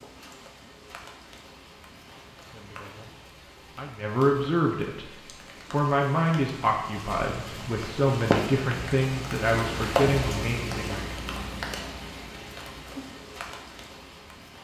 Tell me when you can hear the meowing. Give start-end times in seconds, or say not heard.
not heard.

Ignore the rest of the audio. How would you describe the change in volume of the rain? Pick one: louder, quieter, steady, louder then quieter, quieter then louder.
louder then quieter.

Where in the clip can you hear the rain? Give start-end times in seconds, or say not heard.
0.0-14.6.